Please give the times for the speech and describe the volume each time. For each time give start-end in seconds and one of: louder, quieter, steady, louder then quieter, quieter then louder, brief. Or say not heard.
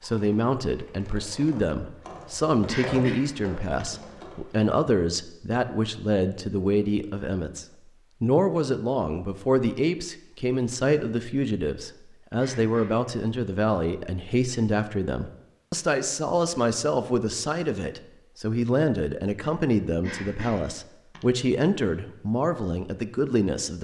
0.0-23.7 steady.